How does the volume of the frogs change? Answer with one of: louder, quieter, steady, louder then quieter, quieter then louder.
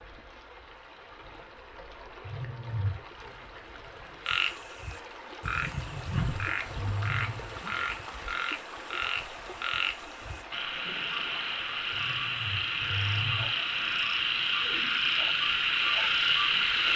louder.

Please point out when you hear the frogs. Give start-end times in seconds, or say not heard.
4.2-16.9.